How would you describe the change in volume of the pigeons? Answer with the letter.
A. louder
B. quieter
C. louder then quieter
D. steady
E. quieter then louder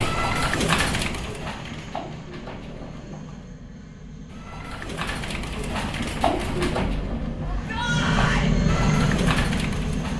E.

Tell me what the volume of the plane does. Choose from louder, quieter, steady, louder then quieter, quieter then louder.
louder.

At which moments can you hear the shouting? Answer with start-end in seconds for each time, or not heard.
7.5-8.5.